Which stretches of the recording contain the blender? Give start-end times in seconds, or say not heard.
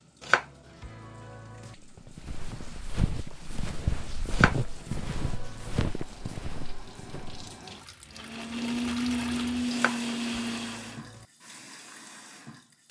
8.1-11.0.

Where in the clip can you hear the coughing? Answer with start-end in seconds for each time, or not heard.
not heard.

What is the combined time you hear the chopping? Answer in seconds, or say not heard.
5 s.